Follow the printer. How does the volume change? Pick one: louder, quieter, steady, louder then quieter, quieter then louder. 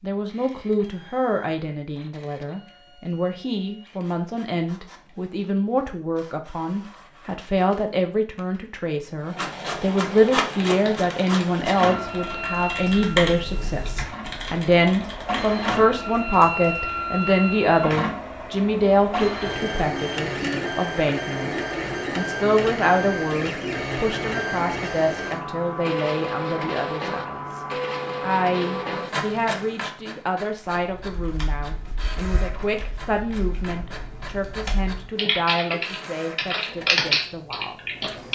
louder then quieter.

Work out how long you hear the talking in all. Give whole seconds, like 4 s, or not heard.
38 s.